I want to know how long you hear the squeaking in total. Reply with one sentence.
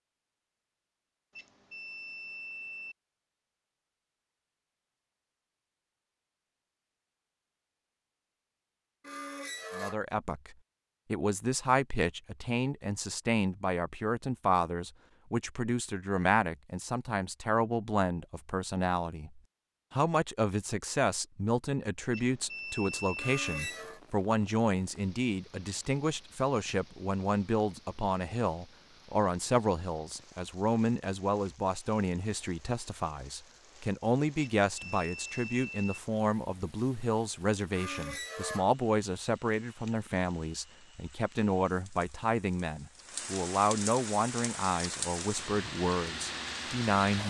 You can hear the squeaking for 3 seconds altogether.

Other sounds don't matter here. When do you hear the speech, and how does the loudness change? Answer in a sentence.
The speech can be heard from 9.8 to 47.2 s, at a steady volume.